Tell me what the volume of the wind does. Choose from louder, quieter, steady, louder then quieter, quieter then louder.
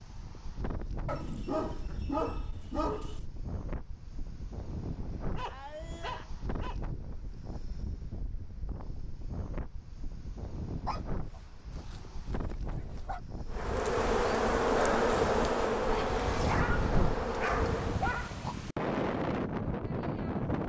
louder.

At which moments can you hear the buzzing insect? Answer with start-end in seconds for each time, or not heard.
13.5-18.1.